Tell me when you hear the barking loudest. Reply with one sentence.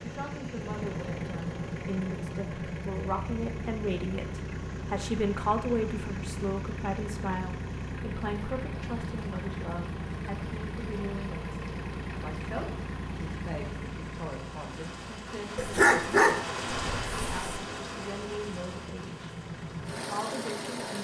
The volume of the barking peaks at 16 seconds.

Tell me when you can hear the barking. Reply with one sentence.
The barking can be heard from 15.6 to 17.6 s.